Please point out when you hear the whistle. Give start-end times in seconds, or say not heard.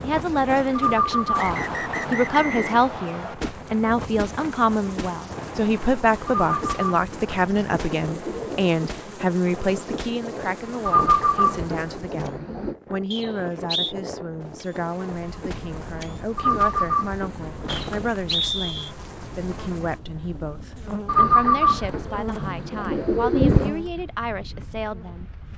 1.4-3.4, 13.1-13.9, 17.6-18.9.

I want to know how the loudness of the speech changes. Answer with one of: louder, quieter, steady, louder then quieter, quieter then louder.
quieter.